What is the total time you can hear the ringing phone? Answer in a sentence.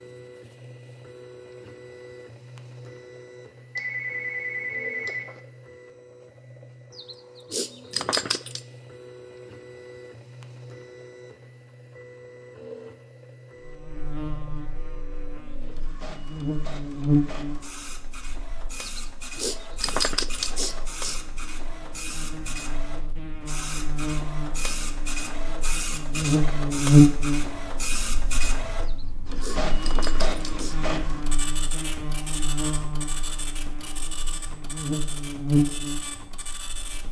The ringing phone can be heard for 2 seconds in total.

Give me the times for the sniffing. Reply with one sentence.
The sniffing can be heard from 7.0 to 8.6 s, from 18.8 to 21.1 s and from 28.8 to 30.8 s.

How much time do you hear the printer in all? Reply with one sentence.
The printer can be heard for 37 seconds in total.